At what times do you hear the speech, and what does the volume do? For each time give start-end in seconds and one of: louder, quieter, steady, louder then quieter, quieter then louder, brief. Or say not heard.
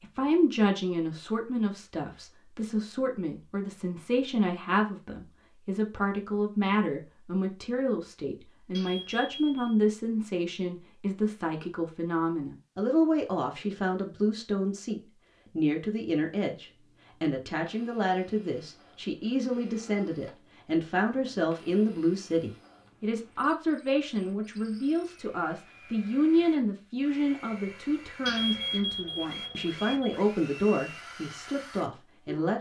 0.0-32.5 steady.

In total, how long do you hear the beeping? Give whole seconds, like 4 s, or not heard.
3 s.